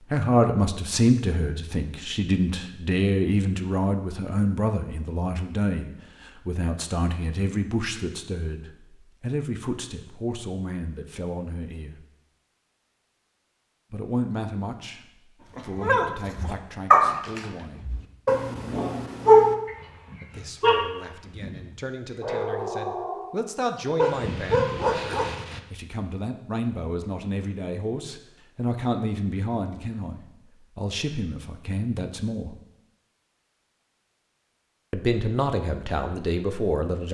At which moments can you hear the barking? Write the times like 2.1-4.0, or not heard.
15.6-23.4, 23.9-25.6.